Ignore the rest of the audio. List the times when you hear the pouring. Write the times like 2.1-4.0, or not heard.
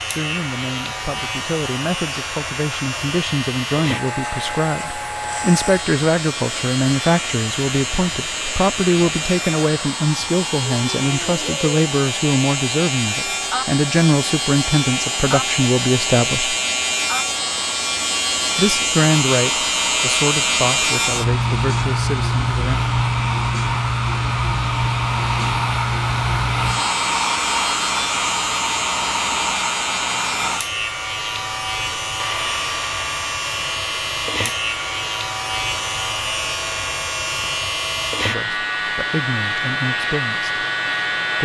not heard.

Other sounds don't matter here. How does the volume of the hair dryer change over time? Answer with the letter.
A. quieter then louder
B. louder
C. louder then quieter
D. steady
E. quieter
C.